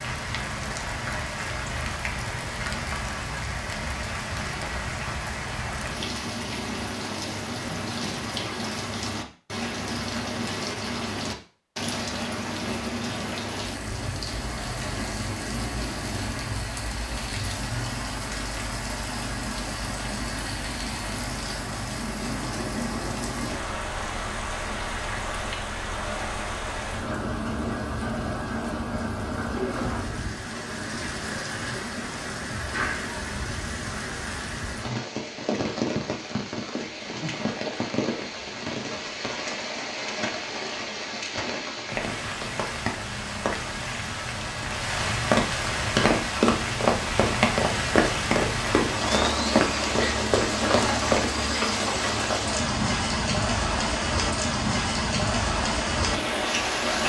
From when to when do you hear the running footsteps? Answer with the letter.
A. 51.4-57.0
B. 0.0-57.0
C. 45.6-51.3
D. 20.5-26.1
C.